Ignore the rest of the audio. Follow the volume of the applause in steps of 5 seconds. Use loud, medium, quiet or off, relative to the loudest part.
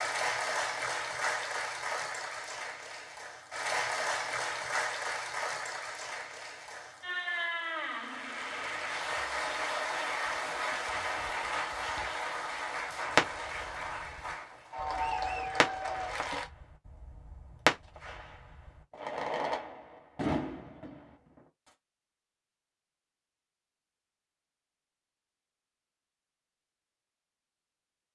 loud, loud, loud, loud, off, off.